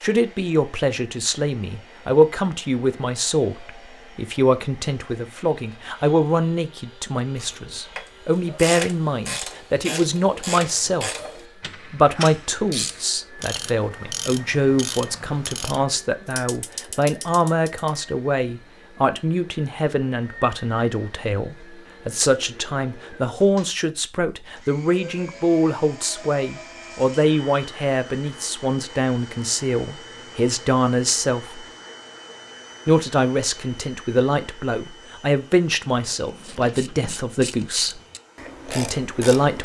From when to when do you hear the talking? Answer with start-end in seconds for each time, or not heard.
0.0-11.1, 11.8-31.6, 32.9-38.0, 38.6-39.6.